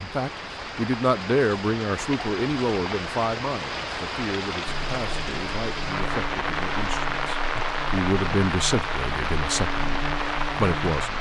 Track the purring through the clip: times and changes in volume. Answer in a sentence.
The purring can't be heard in this clip.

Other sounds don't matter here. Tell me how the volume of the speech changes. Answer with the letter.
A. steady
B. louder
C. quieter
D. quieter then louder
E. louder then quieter
D.